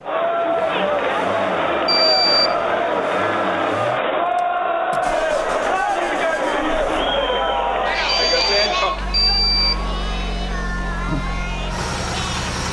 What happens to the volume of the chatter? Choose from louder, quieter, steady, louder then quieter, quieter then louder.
quieter.